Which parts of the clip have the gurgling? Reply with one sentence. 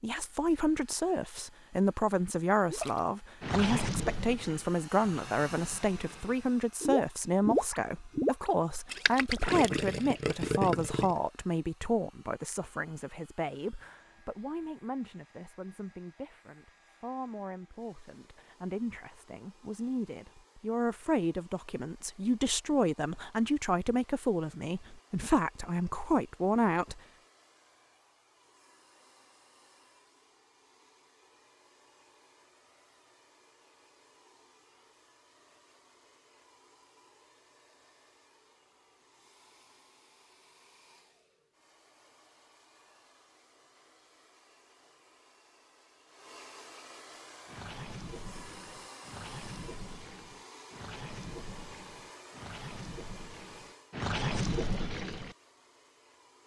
The gurgling can be heard from 2.7 to 11.2 s and from 47.5 to 55.4 s.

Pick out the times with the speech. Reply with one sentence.
You can hear the speech from 0.0 to 27.0 s.